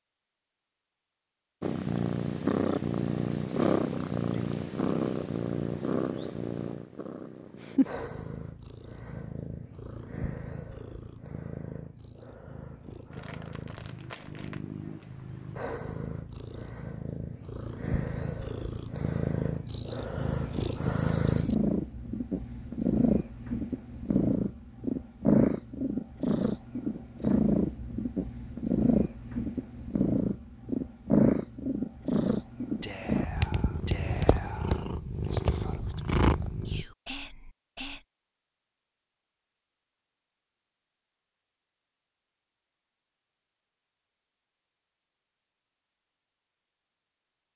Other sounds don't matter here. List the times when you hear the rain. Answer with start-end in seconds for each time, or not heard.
not heard.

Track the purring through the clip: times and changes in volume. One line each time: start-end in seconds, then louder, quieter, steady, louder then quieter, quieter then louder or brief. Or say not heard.
1.6-36.9 quieter then louder.